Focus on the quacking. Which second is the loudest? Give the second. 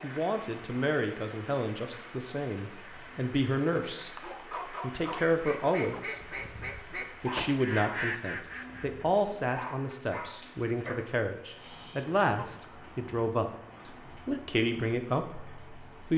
8 s.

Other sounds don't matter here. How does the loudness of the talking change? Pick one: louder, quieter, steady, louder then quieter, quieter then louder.
steady.